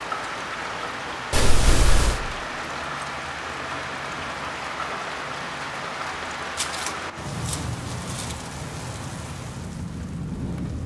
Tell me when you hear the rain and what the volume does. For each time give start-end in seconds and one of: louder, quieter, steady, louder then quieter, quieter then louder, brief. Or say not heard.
0.0-10.8 steady.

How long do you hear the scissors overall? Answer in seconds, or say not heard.
3 s.